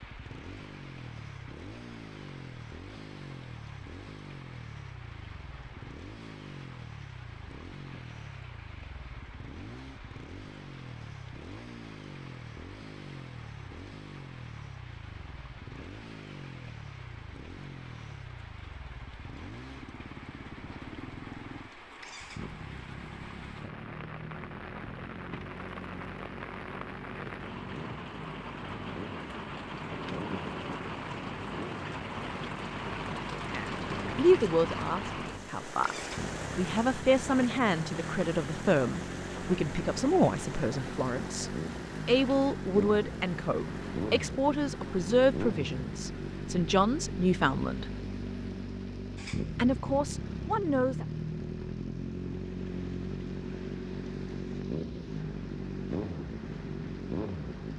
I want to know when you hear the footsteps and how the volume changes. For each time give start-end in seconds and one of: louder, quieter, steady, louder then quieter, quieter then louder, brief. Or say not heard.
not heard.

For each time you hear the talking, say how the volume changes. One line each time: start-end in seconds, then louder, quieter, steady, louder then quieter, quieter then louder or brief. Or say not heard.
33.4-47.9 steady
49.5-51.0 brief.